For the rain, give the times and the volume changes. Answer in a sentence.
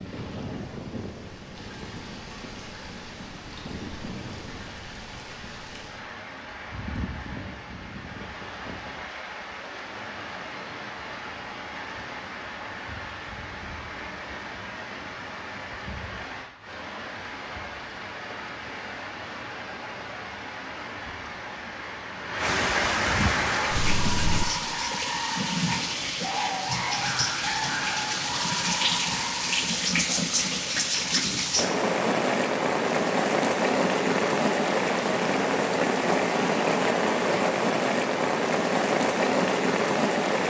The rain can be heard from 0.0 to 40.4 s, getting louder.